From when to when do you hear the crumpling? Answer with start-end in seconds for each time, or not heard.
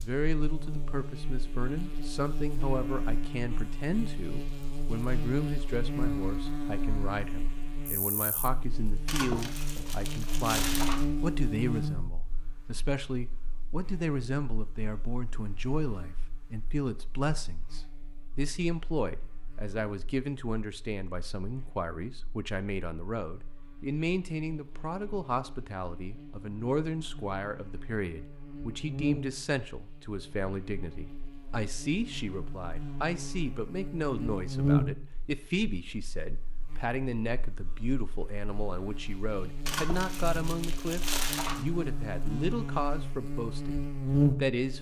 9.1-11.1, 39.6-41.6.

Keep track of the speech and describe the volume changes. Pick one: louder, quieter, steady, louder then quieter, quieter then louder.
steady.